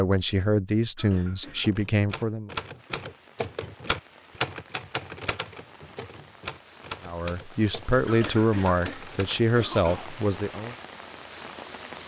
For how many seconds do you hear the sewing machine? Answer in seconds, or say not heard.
not heard.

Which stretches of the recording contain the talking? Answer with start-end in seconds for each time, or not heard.
0.0-2.5, 7.0-10.8.